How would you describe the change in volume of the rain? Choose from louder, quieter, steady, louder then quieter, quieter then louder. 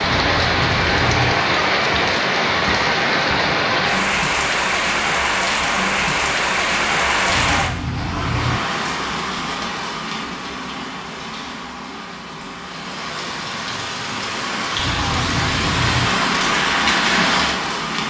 quieter then louder.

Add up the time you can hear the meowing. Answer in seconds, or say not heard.
4 s.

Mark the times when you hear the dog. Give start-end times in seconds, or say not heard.
not heard.